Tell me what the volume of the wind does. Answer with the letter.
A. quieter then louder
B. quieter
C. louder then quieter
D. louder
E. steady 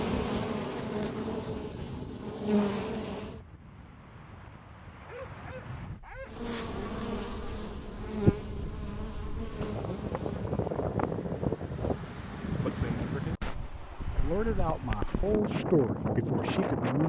D.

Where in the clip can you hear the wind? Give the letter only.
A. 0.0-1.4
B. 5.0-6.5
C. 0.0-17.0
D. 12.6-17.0
C.